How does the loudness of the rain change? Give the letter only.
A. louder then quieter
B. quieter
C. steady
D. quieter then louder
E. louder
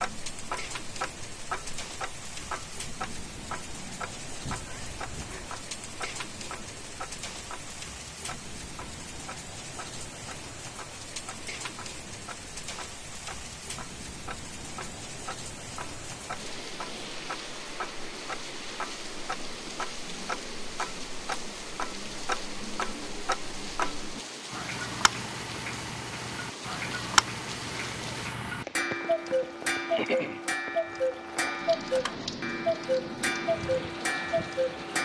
C.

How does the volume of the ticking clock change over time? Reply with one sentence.
The volume of the ticking clock goes down, then up.